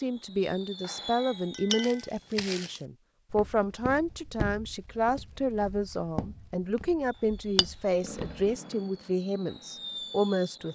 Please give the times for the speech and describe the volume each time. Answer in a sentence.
You can hear the speech from 0.0 to 10.7 s, at a steady volume.